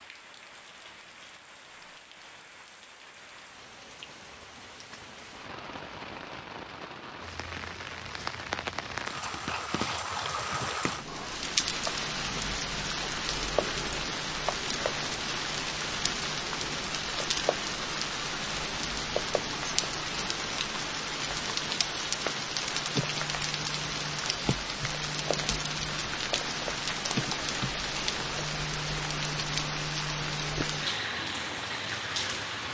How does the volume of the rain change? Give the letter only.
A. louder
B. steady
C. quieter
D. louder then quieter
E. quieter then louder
A.